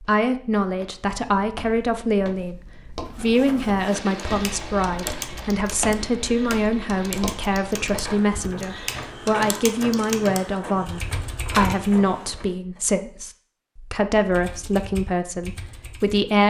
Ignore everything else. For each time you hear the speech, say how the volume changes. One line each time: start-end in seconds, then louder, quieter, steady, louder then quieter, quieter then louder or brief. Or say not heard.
0.0-16.4 steady.